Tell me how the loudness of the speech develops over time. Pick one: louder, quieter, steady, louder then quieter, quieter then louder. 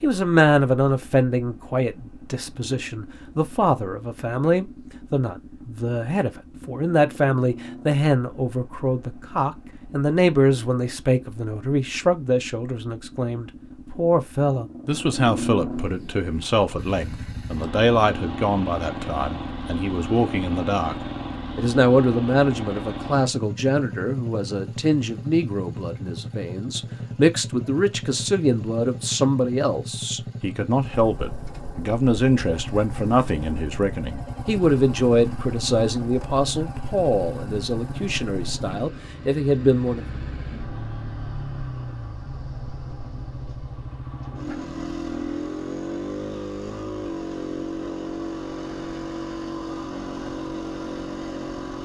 steady.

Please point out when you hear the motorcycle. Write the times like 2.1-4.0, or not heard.
0.0-51.8.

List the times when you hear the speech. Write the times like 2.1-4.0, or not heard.
0.0-20.9, 21.6-40.2.